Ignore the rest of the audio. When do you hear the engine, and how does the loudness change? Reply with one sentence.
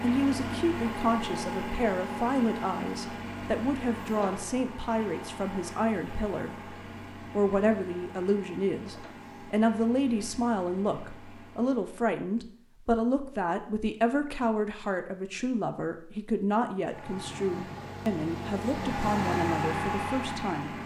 The engine can be heard from 0.0 to 12.0 s, getting quieter; and from 16.8 to 20.8 s, getting louder.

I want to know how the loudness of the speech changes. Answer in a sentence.
The loudness of the speech stays about the same.